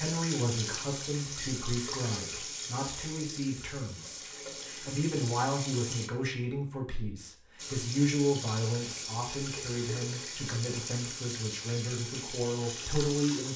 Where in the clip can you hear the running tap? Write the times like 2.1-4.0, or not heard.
0.0-6.1, 7.5-13.5.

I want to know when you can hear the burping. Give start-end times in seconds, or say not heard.
not heard.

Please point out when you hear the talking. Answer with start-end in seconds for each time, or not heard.
0.0-13.5.